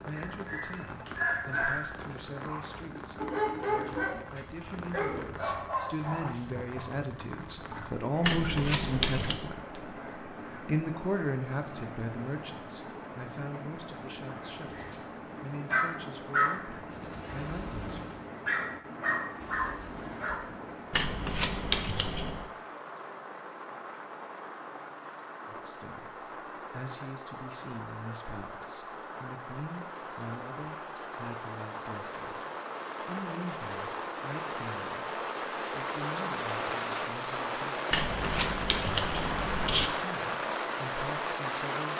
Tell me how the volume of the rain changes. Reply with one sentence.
The volume of the rain goes up.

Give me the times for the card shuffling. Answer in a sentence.
The card shuffling can be heard from 8.2 to 9.4 s, from 20.9 to 22.5 s and from 37.9 to 39.9 s.